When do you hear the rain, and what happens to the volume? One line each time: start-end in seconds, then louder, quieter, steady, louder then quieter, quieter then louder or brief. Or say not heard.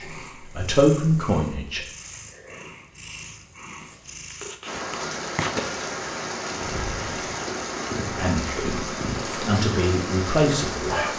4.7-11.1 steady.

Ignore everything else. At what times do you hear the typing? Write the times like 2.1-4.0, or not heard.
not heard.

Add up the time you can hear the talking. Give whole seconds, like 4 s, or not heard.
5 s.